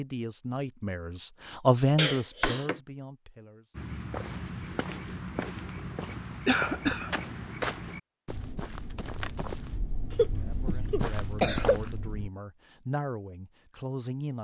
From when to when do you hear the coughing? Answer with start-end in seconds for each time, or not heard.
1.9-2.8, 6.5-7.1, 10.1-11.8.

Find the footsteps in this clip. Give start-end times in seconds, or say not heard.
3.8-12.3.